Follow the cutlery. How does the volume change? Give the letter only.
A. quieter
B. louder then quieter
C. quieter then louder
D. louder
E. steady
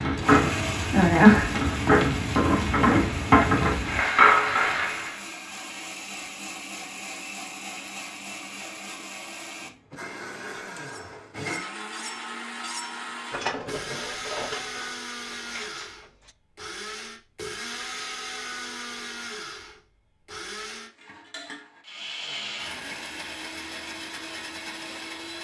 B.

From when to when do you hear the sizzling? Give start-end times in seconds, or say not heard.
0.0-5.2.